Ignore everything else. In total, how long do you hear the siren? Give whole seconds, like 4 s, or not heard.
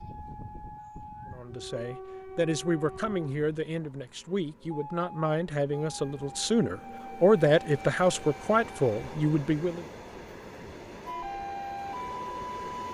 2 s.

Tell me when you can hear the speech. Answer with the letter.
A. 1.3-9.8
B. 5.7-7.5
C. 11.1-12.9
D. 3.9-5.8
A.